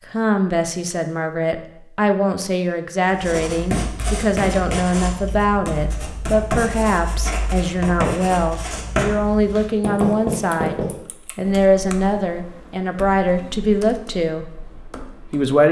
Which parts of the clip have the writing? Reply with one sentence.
The writing can be heard from 3.1 to 10.9 s.